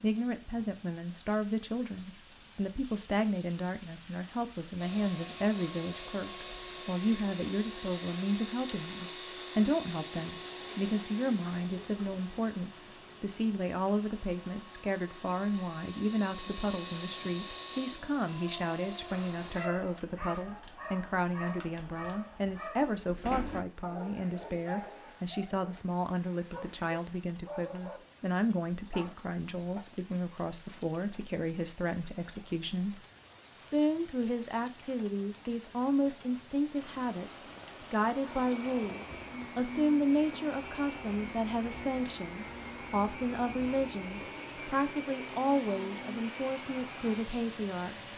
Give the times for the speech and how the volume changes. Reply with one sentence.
You can hear the speech from 0.0 to 48.0 s, at a steady volume.